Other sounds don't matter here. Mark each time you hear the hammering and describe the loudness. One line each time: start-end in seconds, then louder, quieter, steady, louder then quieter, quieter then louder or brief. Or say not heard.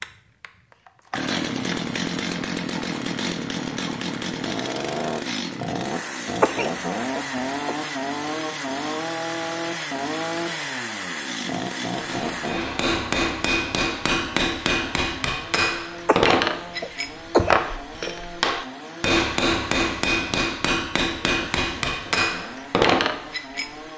11.9-23.7 steady.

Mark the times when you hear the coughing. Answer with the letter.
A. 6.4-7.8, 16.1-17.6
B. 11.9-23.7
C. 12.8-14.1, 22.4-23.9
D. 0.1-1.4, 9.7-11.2
A.